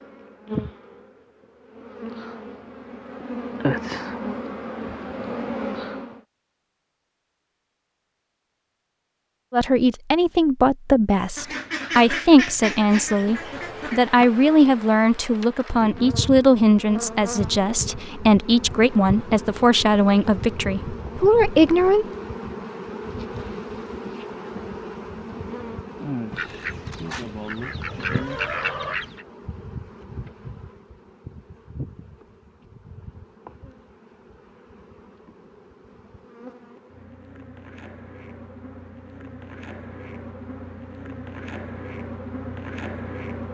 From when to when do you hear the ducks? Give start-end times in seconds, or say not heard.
11.3-14.0, 26.3-29.2.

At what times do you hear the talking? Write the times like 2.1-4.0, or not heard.
9.5-22.1.